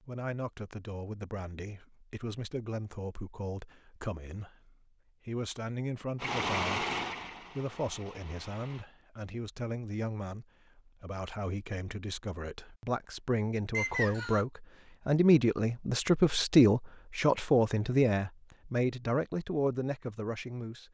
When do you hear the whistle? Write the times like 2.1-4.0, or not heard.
13.7-14.4.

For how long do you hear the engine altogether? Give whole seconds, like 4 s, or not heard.
3 s.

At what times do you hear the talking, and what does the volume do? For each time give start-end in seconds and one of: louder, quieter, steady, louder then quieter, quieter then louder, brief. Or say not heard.
0.0-20.8 louder.